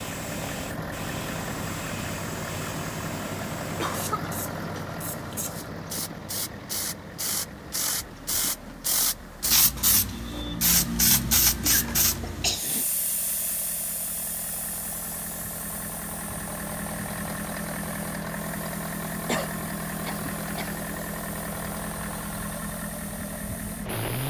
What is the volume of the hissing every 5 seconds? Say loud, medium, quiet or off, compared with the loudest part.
quiet, loud, loud, quiet, quiet.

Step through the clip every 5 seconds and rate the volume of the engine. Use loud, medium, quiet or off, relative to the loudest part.
loud, medium, medium, loud, loud.